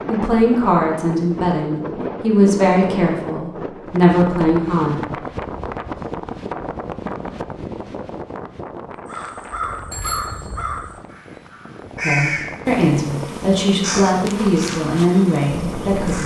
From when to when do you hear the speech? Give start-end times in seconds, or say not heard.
0.1-5.1, 12.0-16.2.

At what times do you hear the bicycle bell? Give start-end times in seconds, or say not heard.
9.9-10.4.